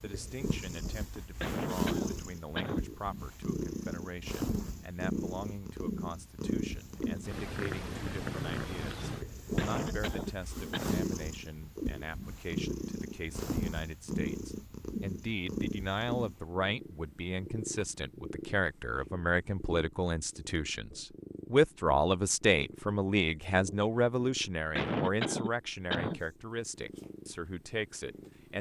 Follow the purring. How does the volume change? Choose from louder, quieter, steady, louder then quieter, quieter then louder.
quieter.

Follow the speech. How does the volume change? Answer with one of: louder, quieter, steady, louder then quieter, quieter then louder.
louder.